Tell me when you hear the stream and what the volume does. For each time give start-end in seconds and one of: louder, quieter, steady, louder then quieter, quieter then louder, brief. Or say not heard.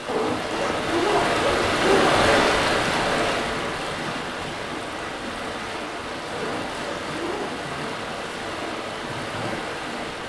0.0-10.2 quieter.